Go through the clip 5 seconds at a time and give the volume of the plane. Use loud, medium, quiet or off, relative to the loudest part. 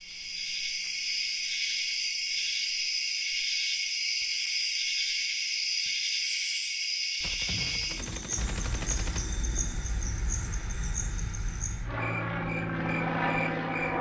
off, medium, loud.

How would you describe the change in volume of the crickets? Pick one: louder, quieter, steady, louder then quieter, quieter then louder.
quieter.